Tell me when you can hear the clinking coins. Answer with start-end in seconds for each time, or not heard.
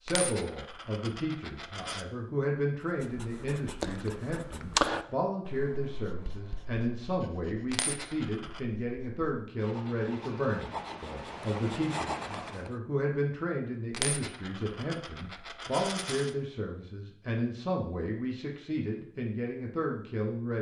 0.1-2.0, 7.7-8.6, 13.9-16.4.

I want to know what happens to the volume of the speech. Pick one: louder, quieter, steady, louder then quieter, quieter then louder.
steady.